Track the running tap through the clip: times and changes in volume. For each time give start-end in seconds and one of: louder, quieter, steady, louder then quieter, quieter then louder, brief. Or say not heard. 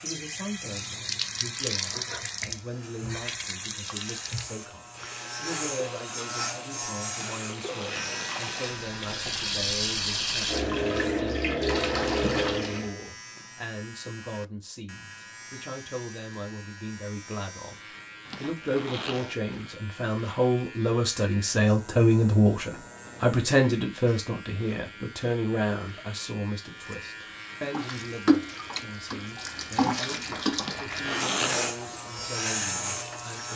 0.1-12.9 quieter then louder
27.6-33.5 quieter.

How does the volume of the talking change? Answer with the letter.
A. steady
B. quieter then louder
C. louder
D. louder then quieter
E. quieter
D.